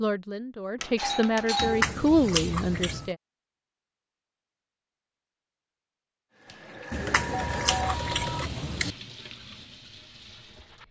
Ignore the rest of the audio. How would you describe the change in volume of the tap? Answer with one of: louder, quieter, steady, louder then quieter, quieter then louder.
quieter.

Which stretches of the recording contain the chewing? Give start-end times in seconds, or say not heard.
1.6-3.1, 6.9-8.9.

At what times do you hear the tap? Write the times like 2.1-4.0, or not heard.
6.3-10.8.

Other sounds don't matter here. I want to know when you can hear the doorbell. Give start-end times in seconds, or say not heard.
0.8-1.9, 6.5-8.4.